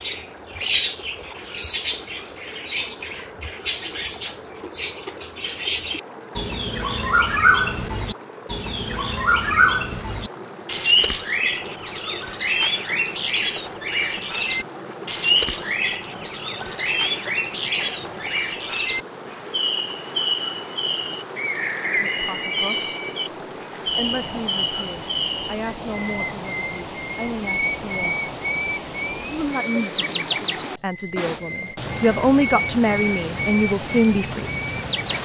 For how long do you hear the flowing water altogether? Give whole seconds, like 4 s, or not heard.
35 s.